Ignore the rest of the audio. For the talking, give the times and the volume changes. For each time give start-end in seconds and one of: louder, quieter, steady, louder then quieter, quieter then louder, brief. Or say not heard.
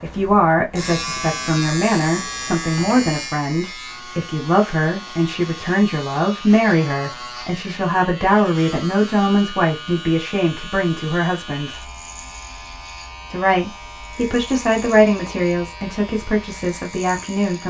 0.0-11.9 steady
13.3-17.6 louder then quieter.